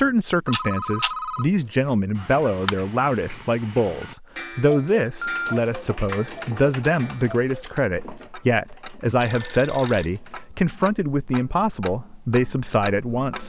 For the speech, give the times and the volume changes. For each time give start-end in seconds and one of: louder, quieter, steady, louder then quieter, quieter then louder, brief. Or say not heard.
0.0-13.4 steady.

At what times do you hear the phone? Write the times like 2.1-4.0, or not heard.
0.5-1.9, 5.0-5.5, 9.2-10.1.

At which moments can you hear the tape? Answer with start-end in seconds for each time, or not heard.
not heard.